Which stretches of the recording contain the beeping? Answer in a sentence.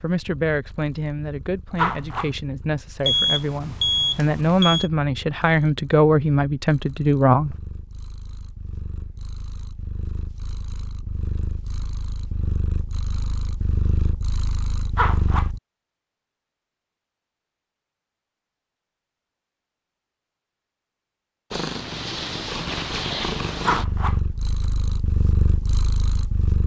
The beeping can be heard from 3.0 to 4.9 s.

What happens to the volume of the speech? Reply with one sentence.
The loudness of the speech goes up.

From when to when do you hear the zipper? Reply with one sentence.
You can hear the zipper from 1.8 to 2.4 s, from 14.9 to 15.5 s and from 23.6 to 24.2 s.